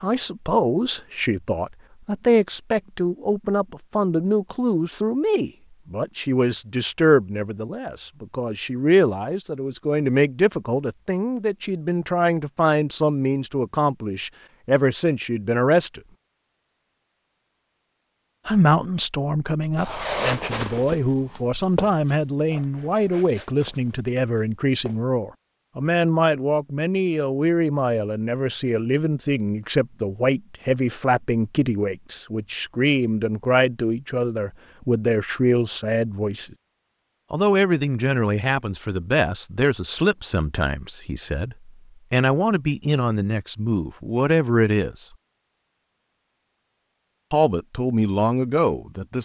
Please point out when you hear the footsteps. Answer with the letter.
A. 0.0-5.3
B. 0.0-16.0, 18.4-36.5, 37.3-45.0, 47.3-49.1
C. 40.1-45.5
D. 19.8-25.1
D.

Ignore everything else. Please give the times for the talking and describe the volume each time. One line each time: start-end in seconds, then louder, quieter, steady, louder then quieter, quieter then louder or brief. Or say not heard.
0.0-16.0 steady
18.4-36.5 steady
37.3-45.0 quieter then louder
47.3-49.1 brief.